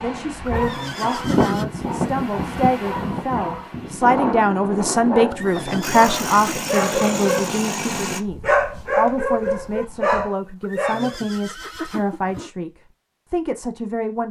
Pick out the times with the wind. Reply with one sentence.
You can hear the wind from 0.0 to 10.3 s.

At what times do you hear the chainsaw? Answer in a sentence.
You can hear the chainsaw from 5.8 to 8.2 s.